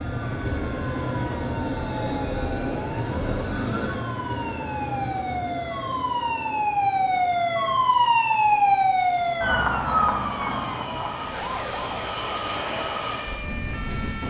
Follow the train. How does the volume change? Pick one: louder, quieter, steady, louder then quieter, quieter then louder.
quieter then louder.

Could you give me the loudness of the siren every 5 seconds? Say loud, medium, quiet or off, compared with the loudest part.
quiet, loud, medium.